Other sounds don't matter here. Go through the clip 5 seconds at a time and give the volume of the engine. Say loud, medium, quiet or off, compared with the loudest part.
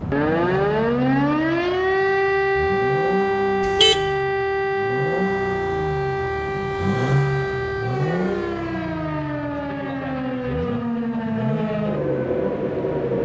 medium, loud, medium.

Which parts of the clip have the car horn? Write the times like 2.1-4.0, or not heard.
3.6-4.1.